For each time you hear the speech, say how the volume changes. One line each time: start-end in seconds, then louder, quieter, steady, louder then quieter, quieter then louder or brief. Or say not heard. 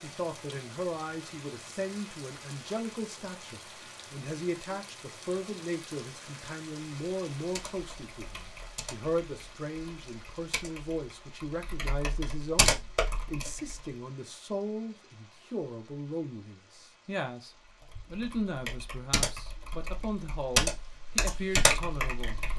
0.0-22.4 steady.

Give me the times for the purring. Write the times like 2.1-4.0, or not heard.
not heard.